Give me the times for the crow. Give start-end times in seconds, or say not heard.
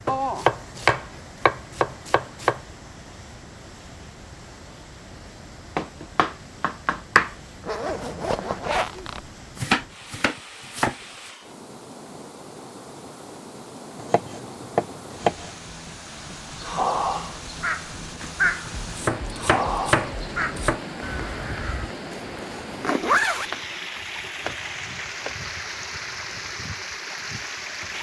16.2-21.9.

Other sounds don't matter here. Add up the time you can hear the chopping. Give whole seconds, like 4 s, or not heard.
11 s.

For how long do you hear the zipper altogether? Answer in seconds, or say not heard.
3 s.